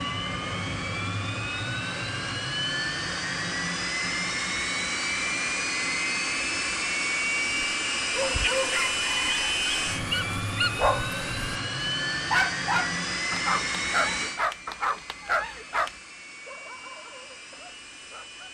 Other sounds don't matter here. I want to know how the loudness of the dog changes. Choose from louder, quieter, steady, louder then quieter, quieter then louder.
quieter.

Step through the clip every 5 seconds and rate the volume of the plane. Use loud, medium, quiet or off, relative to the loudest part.
loud, loud, loud, quiet.